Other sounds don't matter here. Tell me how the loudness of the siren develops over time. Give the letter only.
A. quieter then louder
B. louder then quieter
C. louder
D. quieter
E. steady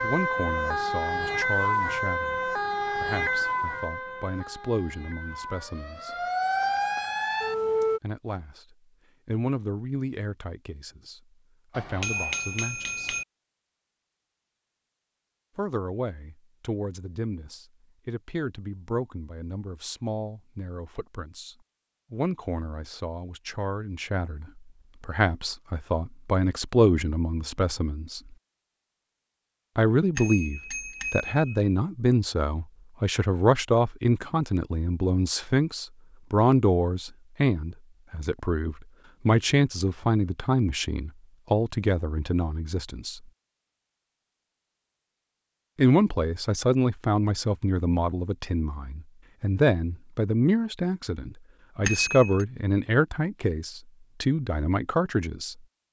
A.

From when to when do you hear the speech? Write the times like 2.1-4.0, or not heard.
0.0-6.2, 8.0-13.2, 15.6-28.2, 29.8-43.2, 45.8-55.5.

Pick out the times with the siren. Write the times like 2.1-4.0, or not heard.
0.0-8.0.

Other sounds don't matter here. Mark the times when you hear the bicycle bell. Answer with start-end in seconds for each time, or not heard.
11.7-13.2, 30.1-31.6, 51.9-52.5.